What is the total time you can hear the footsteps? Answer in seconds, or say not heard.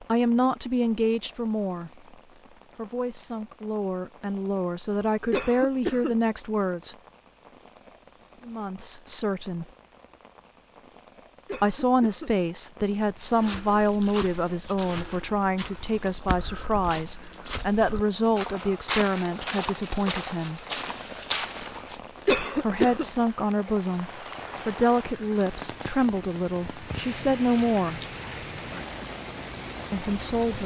9 s.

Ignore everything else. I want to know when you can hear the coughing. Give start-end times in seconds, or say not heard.
5.3-6.2, 11.4-12.3, 22.2-23.1.